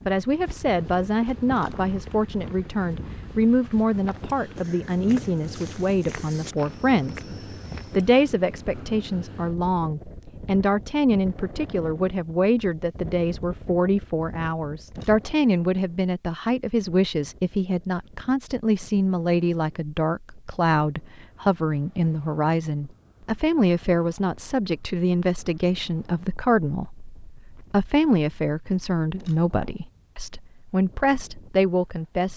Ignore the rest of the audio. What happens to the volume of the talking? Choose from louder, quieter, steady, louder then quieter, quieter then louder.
steady.